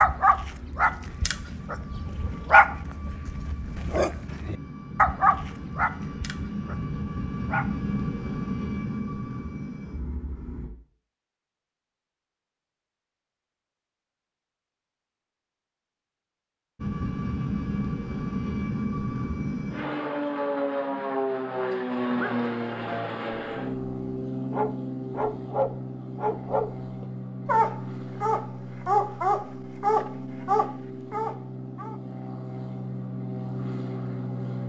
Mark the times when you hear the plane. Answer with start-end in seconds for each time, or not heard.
0.0-10.7, 16.8-34.6.